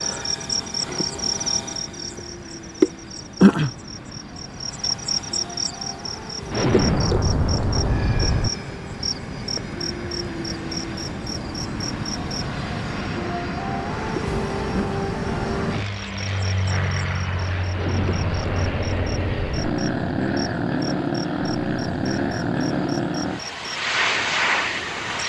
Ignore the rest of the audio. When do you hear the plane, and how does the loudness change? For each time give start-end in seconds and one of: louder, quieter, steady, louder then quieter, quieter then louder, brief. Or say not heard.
0.0-25.2 louder.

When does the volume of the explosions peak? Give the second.
7 s.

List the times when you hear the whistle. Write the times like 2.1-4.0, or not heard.
not heard.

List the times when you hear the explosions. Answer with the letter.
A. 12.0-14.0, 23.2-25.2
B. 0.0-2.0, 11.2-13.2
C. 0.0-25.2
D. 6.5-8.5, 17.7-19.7
D.